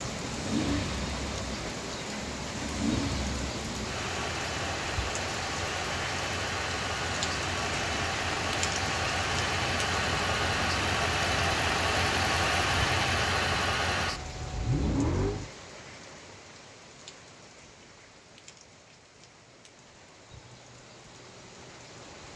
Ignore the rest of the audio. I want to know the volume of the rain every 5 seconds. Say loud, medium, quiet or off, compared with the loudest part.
loud, loud, loud, quiet, quiet.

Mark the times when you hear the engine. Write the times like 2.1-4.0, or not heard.
0.0-15.5.